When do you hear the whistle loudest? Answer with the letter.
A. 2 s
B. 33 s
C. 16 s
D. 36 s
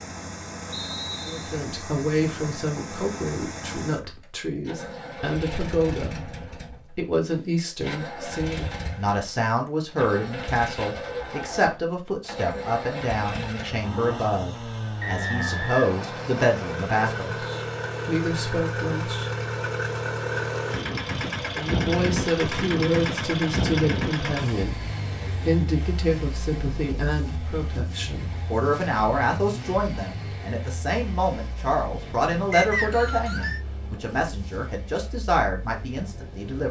B.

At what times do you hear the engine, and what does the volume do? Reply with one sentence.
The engine can be heard from 0.0 to 36.6 s, getting louder then quieter.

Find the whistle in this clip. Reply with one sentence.
You can hear the whistle from 0.7 to 1.6 s, from 15.0 to 16.8 s and from 32.5 to 33.6 s.